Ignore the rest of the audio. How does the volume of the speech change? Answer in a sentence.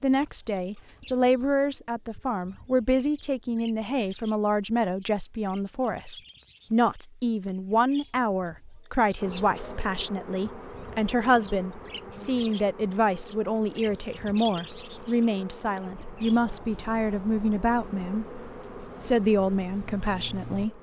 The loudness of the speech stays about the same.